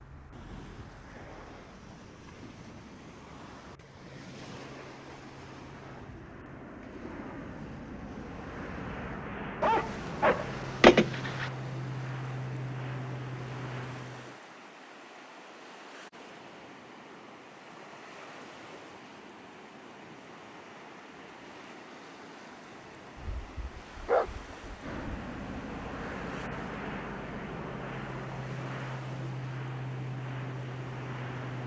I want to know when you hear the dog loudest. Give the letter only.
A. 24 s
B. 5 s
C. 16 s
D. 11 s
D.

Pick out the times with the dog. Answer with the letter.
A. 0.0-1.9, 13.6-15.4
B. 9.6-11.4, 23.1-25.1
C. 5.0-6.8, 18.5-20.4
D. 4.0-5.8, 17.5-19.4
B.